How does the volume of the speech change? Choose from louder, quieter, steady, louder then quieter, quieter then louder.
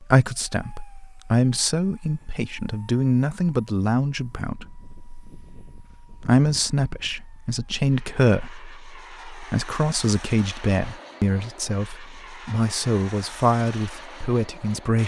steady.